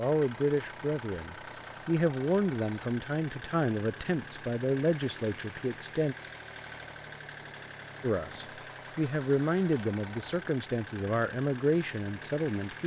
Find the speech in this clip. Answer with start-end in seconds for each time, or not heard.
0.0-6.2, 8.0-12.8.